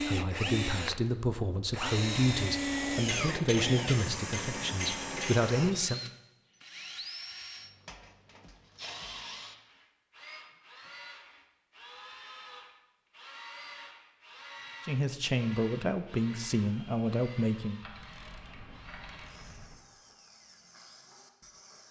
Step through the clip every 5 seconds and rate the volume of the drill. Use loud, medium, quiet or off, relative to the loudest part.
loud, medium, quiet, quiet, quiet.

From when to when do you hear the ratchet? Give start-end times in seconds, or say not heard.
3.0-5.5, 17.8-19.8.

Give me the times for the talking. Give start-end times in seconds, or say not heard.
0.0-6.0, 14.8-17.8.